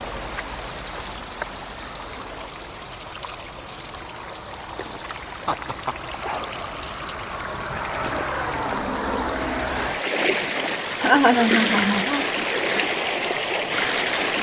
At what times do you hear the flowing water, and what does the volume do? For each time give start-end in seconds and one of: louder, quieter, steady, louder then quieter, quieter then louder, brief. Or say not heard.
0.0-14.3 louder.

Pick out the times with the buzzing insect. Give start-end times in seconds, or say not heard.
not heard.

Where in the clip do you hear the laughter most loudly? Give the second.
11 s.